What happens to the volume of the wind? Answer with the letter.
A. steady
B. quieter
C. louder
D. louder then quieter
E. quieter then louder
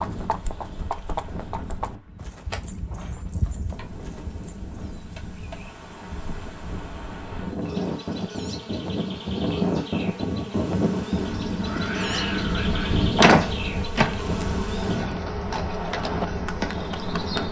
D.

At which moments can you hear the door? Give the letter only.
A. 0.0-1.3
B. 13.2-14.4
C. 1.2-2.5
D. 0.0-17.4
B.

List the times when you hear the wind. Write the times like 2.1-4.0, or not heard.
0.0-17.4.